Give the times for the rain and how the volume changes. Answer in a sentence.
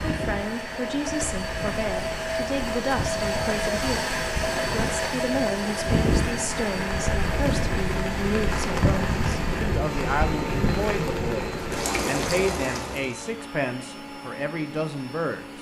The rain can be heard from 0.0 to 13.2 s, getting louder.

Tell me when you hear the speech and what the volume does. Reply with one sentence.
You can hear the speech from 0.1 to 15.4 s, at a steady volume.